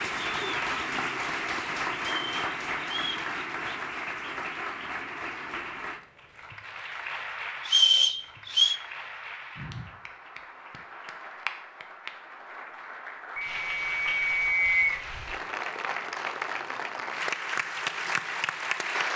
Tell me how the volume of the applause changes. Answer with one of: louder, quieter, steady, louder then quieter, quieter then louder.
quieter then louder.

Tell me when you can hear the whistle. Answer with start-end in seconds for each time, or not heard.
2.0-3.2, 7.7-8.8, 13.3-15.0.